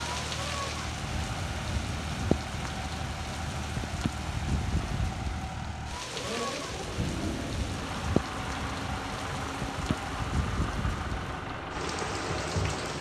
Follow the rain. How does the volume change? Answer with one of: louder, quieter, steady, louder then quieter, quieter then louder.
steady.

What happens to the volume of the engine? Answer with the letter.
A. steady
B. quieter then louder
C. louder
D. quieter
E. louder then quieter
A.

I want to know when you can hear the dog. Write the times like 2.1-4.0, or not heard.
not heard.